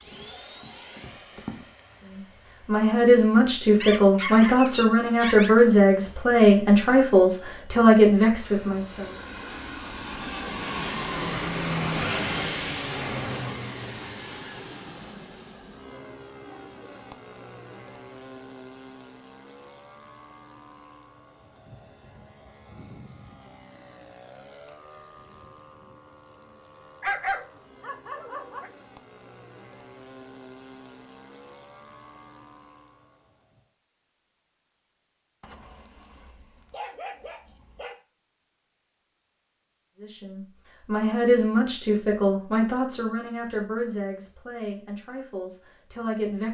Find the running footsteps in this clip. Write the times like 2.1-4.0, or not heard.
0.0-1.6.